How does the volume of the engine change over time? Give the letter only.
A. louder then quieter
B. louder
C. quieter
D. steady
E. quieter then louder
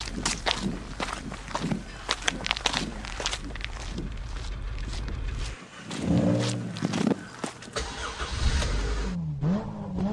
B.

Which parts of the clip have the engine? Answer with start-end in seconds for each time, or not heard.
0.0-10.0.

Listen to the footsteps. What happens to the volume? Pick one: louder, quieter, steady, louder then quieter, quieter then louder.
quieter then louder.